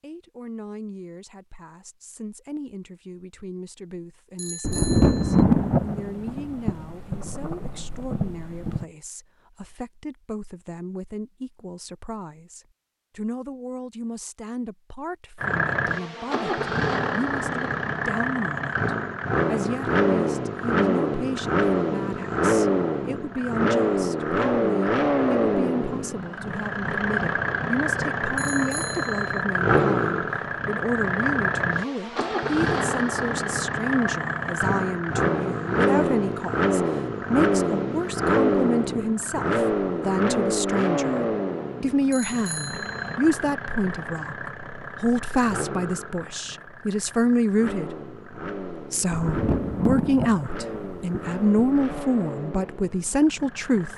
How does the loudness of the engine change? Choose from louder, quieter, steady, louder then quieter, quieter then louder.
quieter.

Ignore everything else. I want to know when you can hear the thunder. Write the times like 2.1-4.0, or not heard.
4.6-8.8, 49.1-52.1.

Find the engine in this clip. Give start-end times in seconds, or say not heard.
15.4-53.9.